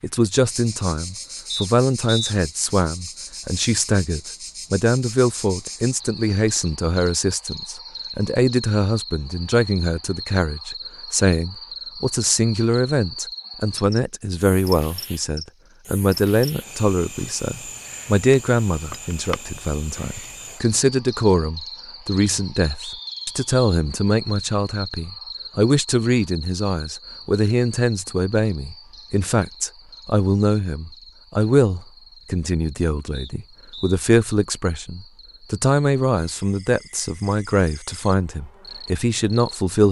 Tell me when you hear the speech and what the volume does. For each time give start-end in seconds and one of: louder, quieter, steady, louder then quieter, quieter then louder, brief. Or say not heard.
0.0-39.8 steady.